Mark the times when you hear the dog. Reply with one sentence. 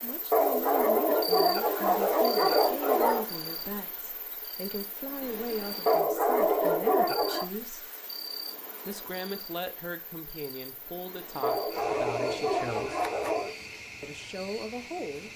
The dog can be heard from 0.3 to 3.2 s, from 5.8 to 7.5 s and from 11.4 to 13.5 s.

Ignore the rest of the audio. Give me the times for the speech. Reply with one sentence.
The speech can be heard from 0.0 to 7.8 s, from 8.8 to 13.1 s and from 14.0 to 15.3 s.